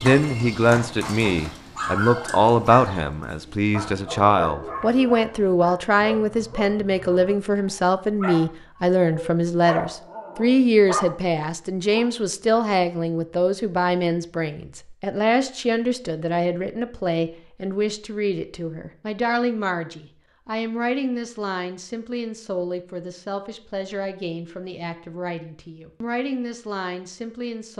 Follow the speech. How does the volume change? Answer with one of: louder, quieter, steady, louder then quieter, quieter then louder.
quieter.